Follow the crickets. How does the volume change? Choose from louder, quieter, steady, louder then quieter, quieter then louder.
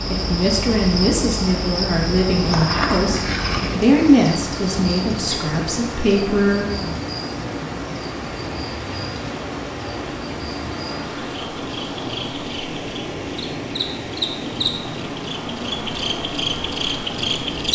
quieter then louder.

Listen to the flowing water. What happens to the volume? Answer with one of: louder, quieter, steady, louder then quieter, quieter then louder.
steady.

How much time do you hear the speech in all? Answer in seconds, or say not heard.
7 s.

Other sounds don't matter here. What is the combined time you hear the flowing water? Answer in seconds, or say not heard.
18 s.